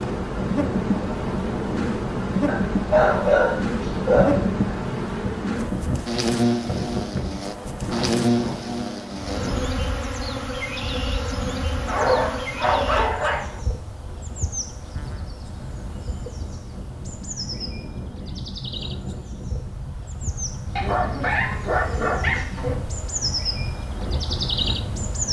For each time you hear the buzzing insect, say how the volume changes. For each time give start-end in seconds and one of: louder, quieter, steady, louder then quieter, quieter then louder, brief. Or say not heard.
0.0-25.2 quieter then louder.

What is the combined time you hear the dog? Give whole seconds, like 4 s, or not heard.
6 s.